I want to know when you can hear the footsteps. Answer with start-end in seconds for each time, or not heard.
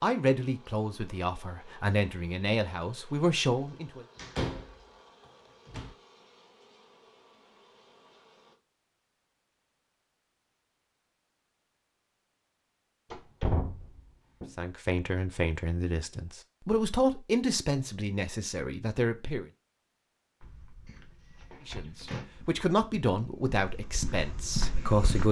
20.4-25.2.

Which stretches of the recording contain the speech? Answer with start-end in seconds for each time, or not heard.
0.0-4.0, 14.6-19.4, 21.6-25.2.